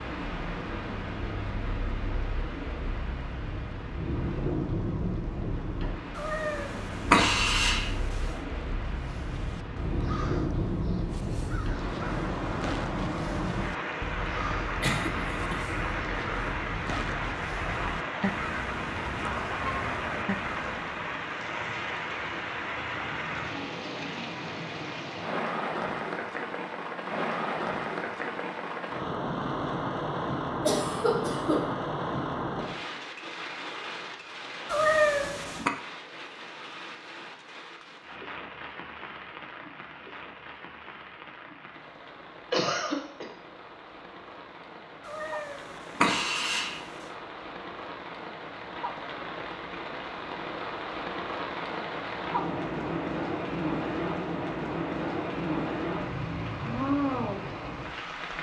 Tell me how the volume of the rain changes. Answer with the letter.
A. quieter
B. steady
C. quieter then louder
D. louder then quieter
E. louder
C.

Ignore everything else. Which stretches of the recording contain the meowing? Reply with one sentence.
You can hear the meowing from 6.2 to 8.3 s, from 34.6 to 35.7 s and from 45.0 to 46.8 s.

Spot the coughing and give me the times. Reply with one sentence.
You can hear the coughing from 14.8 to 15.6 s, from 30.6 to 31.8 s and from 42.5 to 43.2 s.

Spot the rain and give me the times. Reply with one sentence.
You can hear the rain from 0.0 to 58.3 s.